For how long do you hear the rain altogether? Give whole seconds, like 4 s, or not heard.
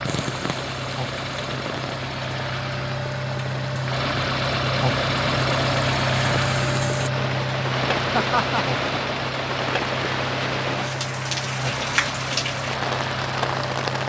14 s.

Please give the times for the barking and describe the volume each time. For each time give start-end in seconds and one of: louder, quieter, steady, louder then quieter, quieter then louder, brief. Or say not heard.
not heard.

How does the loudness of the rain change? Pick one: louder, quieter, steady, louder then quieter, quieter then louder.
louder.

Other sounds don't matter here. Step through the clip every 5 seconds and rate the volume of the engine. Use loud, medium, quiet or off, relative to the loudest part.
loud, loud, medium.